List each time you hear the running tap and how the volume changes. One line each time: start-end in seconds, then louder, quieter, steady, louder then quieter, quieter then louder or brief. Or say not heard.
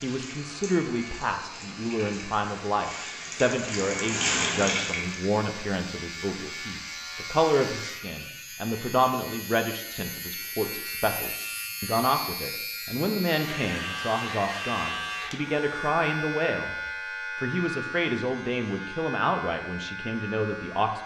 0.0-5.4 louder.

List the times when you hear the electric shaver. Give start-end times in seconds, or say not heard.
0.0-21.0.